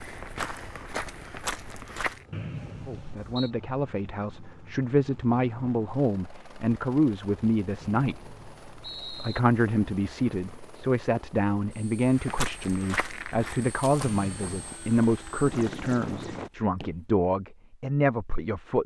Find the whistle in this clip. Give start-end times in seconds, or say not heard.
2.3-3.5, 7.8-9.4, 14.0-14.7.